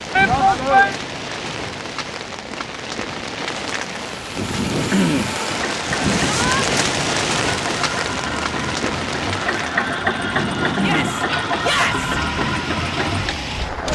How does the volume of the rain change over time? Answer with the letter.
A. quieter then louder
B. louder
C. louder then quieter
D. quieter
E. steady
C.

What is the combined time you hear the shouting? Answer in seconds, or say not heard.
3 s.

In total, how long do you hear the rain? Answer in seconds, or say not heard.
14 s.